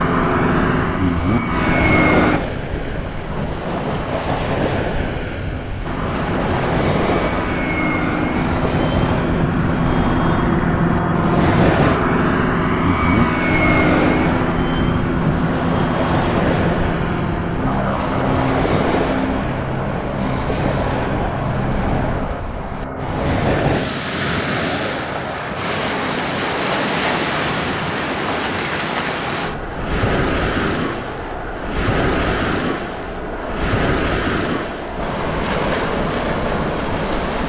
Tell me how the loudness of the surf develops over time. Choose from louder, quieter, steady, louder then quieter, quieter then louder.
steady.